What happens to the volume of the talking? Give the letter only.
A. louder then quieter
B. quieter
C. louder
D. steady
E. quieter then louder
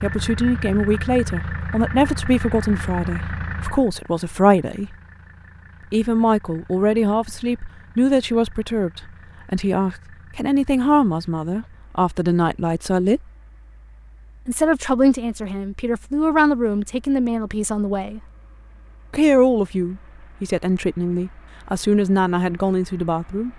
D.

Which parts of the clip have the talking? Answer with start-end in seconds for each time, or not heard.
0.0-5.0, 5.9-13.2, 14.4-18.2, 19.1-23.5.